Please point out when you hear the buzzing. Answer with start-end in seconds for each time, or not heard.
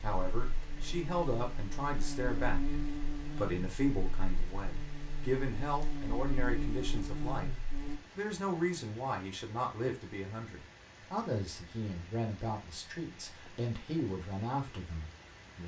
0.0-8.0.